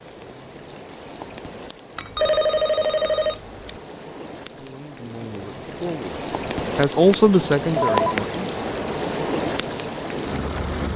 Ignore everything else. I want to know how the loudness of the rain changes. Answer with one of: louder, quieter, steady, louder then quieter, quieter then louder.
louder.